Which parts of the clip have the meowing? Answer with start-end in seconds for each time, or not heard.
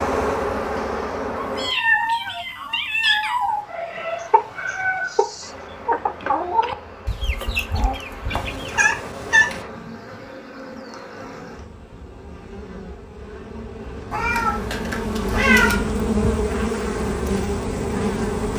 1.4-3.6, 8.3-9.7, 14.1-15.8.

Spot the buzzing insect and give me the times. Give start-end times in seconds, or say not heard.
0.0-1.8, 5.4-18.5.